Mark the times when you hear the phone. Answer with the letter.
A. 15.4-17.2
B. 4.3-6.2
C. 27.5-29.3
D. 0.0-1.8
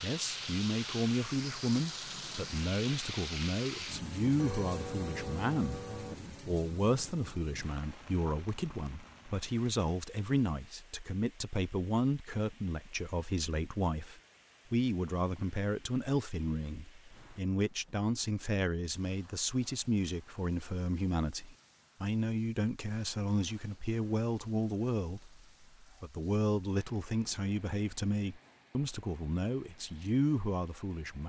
B.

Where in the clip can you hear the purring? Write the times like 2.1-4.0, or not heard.
not heard.